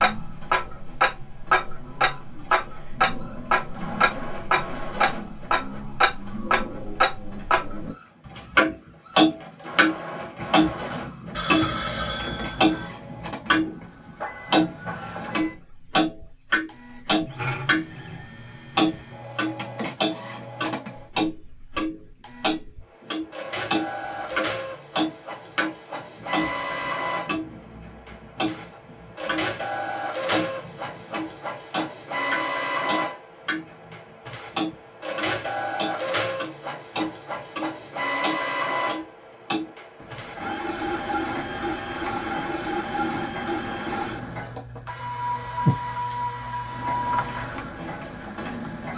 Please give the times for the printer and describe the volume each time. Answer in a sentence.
The printer can be heard from 0.1 to 48.9 s, getting louder.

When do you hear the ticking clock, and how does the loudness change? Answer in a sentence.
You can hear the ticking clock from 0.0 to 13.8 s, getting louder then quieter; and from 14.5 to 48.9 s, getting quieter.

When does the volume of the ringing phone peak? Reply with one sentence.
The volume of the ringing phone peaks at 12 seconds.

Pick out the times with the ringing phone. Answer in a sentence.
You can hear the ringing phone from 11.3 to 12.9 s.